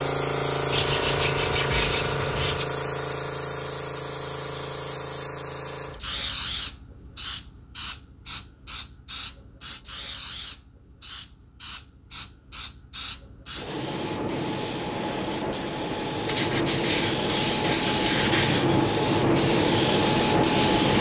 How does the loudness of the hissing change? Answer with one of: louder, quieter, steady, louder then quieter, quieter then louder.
quieter then louder.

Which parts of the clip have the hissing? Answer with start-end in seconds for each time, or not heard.
0.0-20.9.